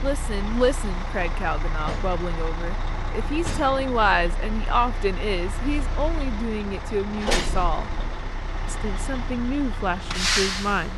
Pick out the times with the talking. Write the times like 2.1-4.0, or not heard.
0.0-7.9, 8.7-10.9.